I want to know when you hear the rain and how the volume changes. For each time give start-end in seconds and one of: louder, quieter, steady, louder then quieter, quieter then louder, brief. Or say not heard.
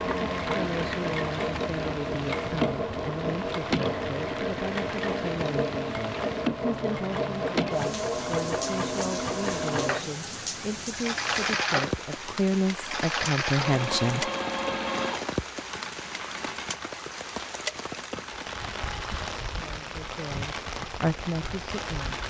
0.0-22.2 steady.